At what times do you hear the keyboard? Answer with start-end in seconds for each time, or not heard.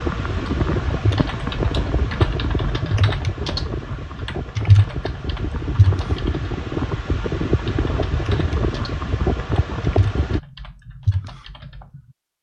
0.1-6.5, 7.5-12.0.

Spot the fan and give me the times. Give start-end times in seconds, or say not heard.
0.0-10.4.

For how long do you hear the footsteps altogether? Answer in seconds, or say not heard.
not heard.